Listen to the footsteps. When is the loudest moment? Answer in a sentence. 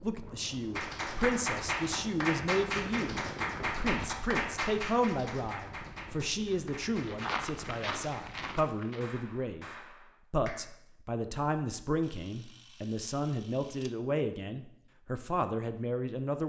The loudest moment of the footsteps is at 7 seconds.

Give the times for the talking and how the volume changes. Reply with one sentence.
You can hear the talking from 0.0 to 9.7 s, at a steady volume; and from 10.3 to 16.4 s, at a steady volume.